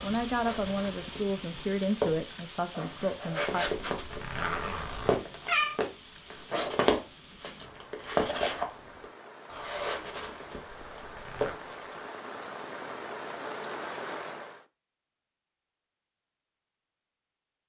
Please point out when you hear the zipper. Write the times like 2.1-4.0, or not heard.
3.9-5.2, 10.8-11.6.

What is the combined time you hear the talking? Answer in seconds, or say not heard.
4 s.